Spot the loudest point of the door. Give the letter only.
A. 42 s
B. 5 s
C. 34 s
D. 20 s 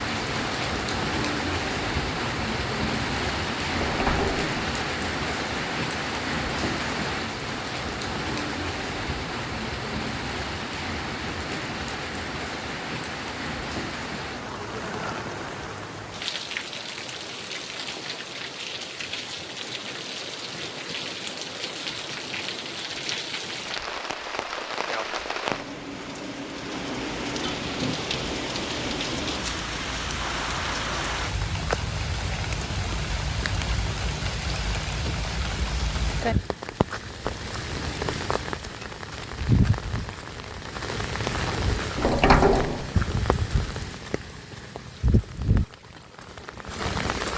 A.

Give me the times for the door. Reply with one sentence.
The door can be heard from 3.7 to 4.5 s and from 42.0 to 42.9 s.